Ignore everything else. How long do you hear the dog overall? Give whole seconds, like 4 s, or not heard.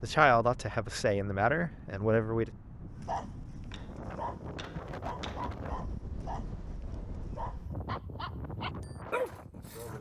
7 s.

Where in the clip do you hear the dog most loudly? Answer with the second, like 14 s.
9 s.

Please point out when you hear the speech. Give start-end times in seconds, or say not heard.
0.0-2.5.